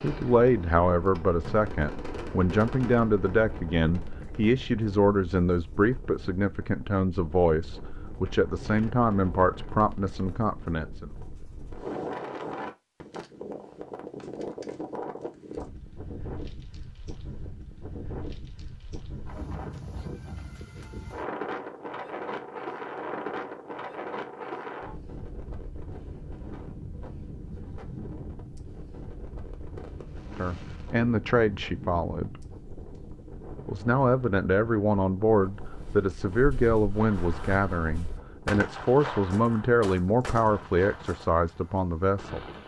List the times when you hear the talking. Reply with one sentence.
The talking can be heard from 0.0 to 11.1 s, from 30.4 to 32.4 s and from 33.6 to 42.4 s.